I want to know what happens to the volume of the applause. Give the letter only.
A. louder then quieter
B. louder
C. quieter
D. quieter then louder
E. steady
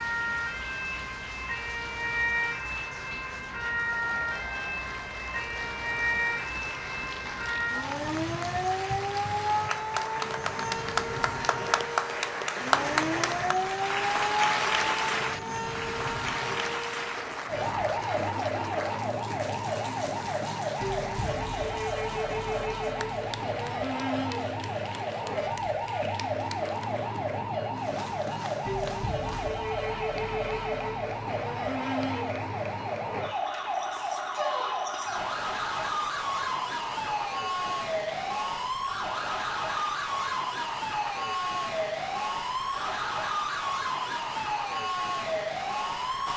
A.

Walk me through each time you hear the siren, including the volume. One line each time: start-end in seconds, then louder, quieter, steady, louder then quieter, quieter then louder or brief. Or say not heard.
0.0-46.3 steady.